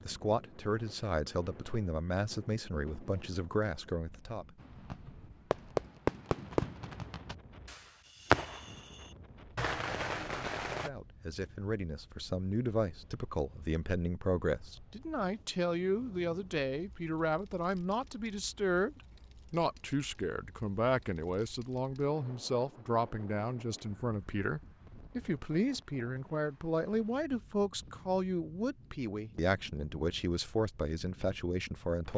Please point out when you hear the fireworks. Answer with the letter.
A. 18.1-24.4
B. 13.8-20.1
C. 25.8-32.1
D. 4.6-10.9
D.